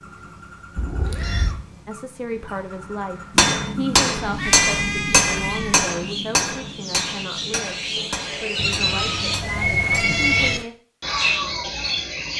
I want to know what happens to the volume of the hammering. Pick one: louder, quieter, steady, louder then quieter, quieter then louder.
quieter.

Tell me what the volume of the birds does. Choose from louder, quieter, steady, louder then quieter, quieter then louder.
louder.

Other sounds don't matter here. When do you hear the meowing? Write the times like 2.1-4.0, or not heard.
0.8-1.6, 4.2-5.8, 8.6-10.6.